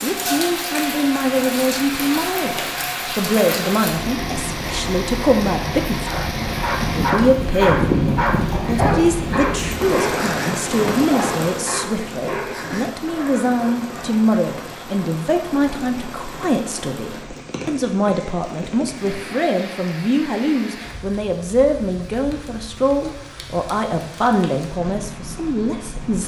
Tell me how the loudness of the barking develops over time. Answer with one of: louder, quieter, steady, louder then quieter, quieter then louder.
quieter.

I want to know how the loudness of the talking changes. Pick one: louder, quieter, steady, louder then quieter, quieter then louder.
steady.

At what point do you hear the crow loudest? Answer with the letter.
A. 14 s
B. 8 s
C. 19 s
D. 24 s
B.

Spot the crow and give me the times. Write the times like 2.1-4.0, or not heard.
6.2-9.6.